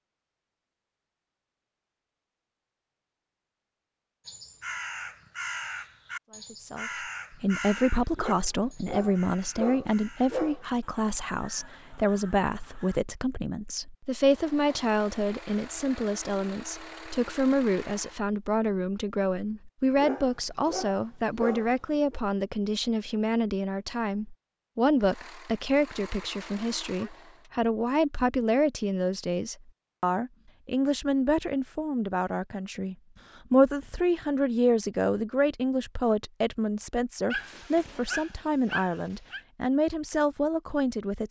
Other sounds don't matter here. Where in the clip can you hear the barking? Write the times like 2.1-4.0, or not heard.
8.2-10.7, 19.9-22.2, 37.3-39.4.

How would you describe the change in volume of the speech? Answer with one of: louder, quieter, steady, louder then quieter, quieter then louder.
steady.